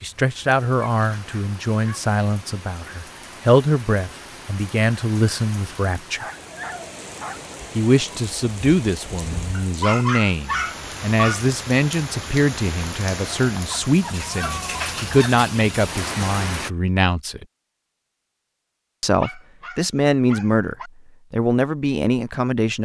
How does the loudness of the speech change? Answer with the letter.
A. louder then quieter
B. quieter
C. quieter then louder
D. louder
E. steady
E.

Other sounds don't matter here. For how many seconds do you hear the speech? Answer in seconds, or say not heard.
20 s.